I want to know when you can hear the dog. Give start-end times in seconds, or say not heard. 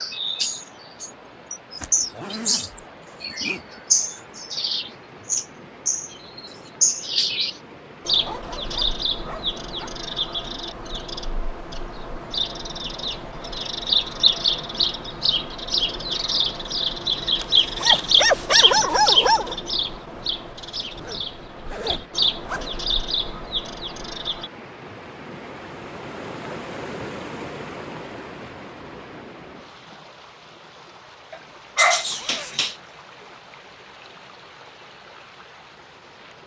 8.2-9.9, 17.4-19.6, 31.3-32.8.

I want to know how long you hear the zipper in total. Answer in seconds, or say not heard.
4 s.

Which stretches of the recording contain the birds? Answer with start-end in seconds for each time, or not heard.
0.0-24.5.